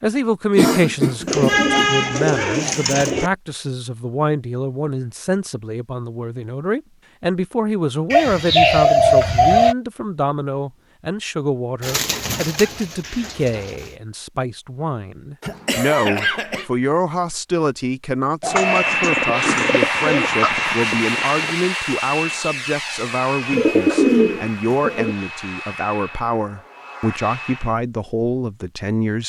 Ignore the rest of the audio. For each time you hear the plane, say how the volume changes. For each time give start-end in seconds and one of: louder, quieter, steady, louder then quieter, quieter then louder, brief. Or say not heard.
18.4-27.8 quieter.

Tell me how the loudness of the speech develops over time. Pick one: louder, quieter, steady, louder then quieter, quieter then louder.
steady.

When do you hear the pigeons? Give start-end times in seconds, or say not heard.
1.2-3.3, 8.1-9.8, 11.8-13.8, 18.4-20.5, 23.5-25.1.